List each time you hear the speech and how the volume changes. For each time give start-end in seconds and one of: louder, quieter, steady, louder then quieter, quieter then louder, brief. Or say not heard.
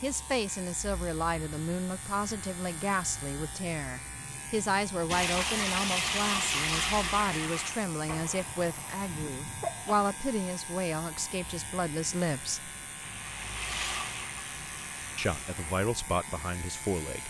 0.0-12.7 steady
15.2-17.2 brief.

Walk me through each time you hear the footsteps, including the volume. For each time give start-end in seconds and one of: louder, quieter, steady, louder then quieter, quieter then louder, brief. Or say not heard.
not heard.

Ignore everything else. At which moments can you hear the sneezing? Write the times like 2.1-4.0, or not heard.
8.4-9.9.